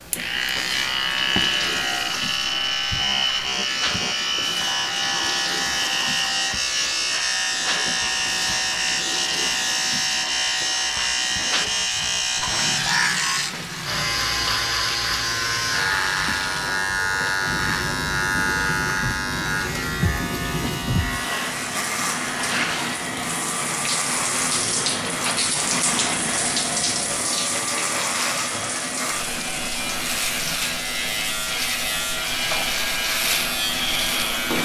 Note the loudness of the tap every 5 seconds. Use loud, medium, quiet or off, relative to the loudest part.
medium, medium, medium, medium, loud, loud, medium.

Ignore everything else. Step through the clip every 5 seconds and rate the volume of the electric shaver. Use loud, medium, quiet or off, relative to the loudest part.
loud, loud, loud, loud, medium, medium, loud.